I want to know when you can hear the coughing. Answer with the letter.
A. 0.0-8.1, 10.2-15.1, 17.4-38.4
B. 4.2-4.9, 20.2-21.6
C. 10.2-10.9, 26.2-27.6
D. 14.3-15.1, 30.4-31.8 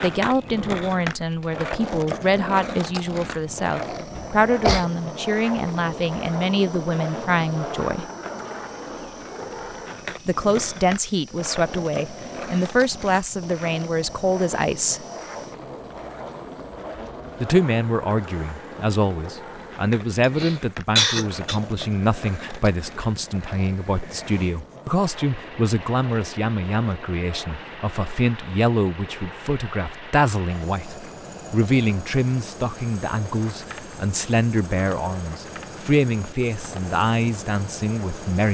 B.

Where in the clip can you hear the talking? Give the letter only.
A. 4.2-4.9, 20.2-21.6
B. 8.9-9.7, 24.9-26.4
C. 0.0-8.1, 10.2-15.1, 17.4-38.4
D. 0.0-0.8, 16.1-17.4
C.